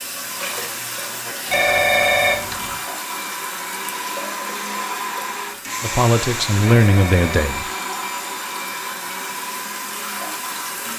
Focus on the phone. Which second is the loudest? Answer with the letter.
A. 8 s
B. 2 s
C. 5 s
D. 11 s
B.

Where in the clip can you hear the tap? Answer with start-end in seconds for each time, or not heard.
0.0-10.9.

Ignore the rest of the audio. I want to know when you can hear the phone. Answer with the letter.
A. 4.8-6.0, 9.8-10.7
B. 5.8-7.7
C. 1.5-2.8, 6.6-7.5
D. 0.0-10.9
C.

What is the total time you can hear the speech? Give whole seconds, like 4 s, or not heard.
2 s.